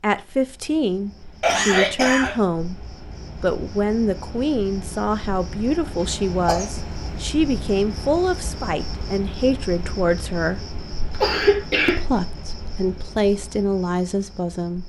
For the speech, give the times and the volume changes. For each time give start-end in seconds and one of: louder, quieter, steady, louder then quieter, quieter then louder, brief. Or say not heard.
0.0-10.6 steady
11.8-14.8 brief.